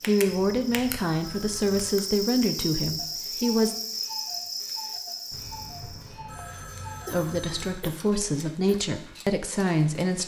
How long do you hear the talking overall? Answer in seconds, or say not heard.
7 s.